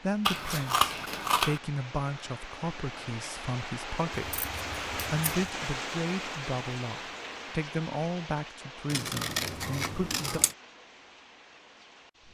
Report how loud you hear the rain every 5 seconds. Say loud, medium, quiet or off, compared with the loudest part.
loud, loud, quiet.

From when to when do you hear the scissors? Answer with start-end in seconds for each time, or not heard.
0.2-1.6, 4.2-5.5, 8.9-10.6.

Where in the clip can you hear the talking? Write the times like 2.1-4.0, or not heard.
0.0-10.4.